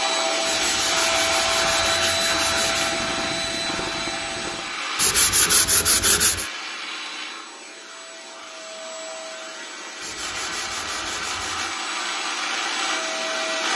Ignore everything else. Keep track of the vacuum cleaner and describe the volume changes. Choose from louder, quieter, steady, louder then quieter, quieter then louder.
quieter then louder.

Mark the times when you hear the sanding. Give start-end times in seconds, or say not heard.
0.5-3.0, 5.0-6.5, 10.0-11.8.